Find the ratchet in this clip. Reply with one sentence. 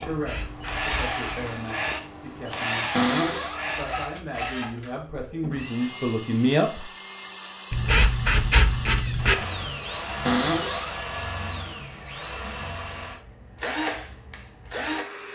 You can hear the ratchet from 0.1 to 1.5 s and from 7.7 to 9.4 s.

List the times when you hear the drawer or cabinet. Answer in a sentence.
The drawer or cabinet can be heard from 2.9 to 3.6 s and from 10.2 to 10.9 s.